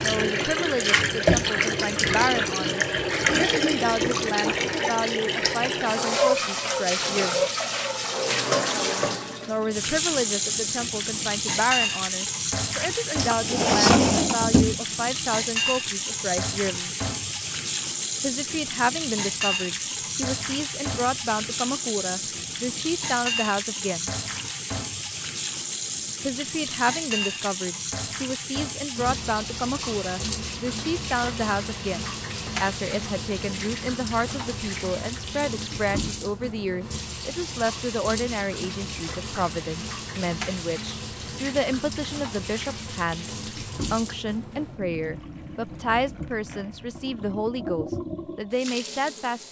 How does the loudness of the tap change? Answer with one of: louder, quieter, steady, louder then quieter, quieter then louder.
quieter.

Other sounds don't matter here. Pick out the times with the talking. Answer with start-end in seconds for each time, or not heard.
0.0-7.5, 9.4-16.9, 18.2-24.1, 26.2-49.4.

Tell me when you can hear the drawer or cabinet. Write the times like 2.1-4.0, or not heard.
13.2-14.8.